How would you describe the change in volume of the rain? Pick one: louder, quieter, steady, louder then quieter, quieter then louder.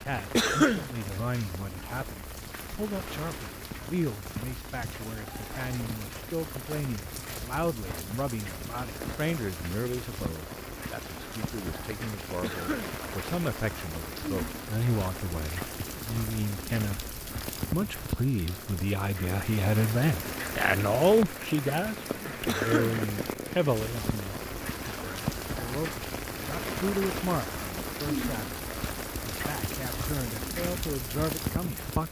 louder.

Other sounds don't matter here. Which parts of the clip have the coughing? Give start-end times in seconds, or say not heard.
0.3-0.9, 12.4-12.9, 22.4-23.0.